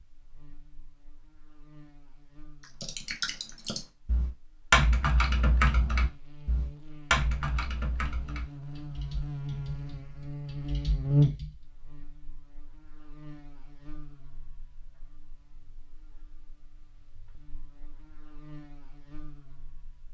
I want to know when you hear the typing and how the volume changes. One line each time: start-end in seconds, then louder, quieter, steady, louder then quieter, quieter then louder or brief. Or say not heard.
2.8-11.6 quieter.